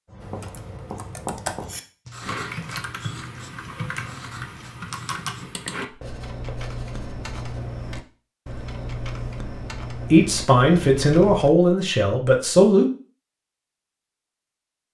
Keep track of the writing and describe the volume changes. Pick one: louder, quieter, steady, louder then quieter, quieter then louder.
quieter.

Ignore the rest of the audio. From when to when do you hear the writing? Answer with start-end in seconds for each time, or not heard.
0.1-7.7.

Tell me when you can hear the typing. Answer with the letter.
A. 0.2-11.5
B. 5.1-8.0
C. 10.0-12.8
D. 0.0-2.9
A.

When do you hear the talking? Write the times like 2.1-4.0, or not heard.
10.0-12.8.